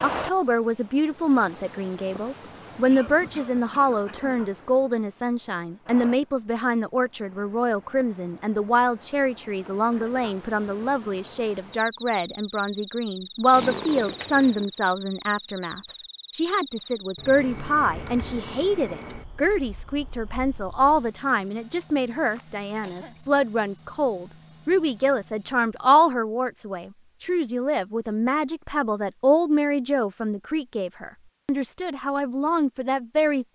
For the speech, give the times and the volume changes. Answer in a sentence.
The speech can be heard from 0.0 to 33.4 s, at a steady volume.